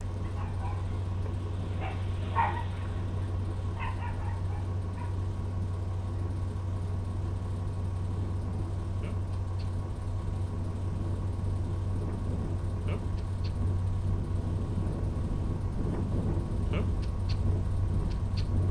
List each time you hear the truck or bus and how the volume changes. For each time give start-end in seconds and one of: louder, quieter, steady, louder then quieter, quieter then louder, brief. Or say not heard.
0.0-18.6 steady.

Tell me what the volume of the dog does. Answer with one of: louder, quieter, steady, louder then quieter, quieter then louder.
louder then quieter.